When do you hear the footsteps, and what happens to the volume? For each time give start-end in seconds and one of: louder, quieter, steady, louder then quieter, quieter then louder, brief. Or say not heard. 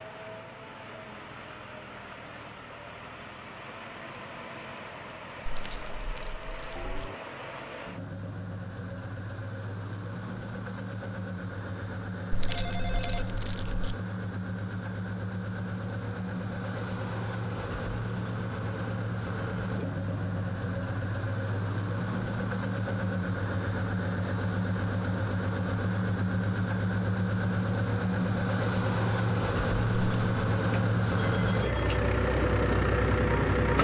not heard.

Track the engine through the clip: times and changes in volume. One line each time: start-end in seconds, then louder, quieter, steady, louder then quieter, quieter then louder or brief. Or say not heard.
0.0-33.7 louder.